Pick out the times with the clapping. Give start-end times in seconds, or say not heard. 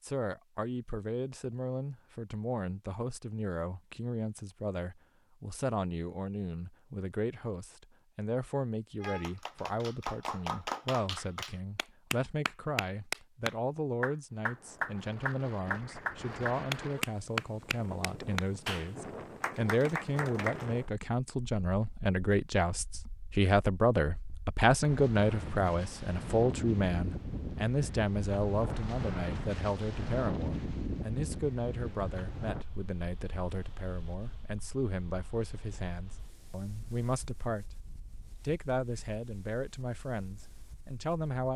9.0-20.6.